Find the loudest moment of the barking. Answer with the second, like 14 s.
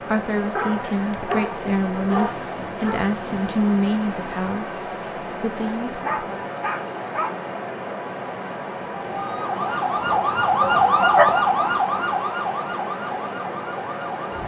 11 s.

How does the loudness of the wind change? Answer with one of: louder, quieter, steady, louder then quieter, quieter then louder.
steady.